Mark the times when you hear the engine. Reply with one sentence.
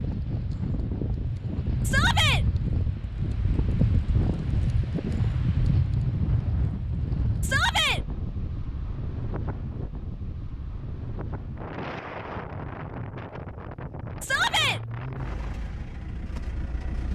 The engine can be heard from 14.6 to 17.0 s.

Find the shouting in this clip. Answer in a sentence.
The shouting can be heard from 1.9 to 2.5 s, from 7.4 to 8.0 s and from 14.2 to 14.8 s.